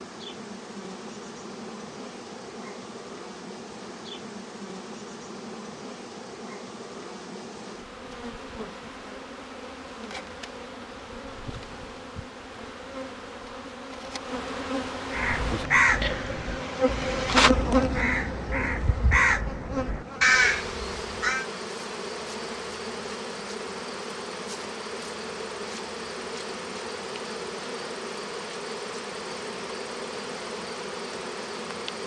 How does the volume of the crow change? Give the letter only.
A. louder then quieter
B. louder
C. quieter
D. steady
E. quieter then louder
E.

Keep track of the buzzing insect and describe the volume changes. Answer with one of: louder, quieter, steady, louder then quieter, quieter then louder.
louder then quieter.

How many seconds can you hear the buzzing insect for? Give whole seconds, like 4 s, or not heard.
32 s.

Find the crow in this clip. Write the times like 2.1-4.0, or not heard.
15.1-21.4.